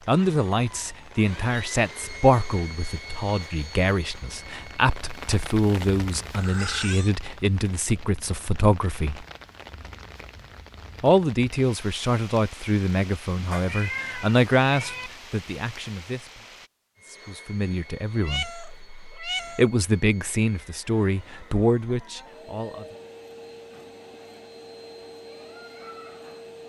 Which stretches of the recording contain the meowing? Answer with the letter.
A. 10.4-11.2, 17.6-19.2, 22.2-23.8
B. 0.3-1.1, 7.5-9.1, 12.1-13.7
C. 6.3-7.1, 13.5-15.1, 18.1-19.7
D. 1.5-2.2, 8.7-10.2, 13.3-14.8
C.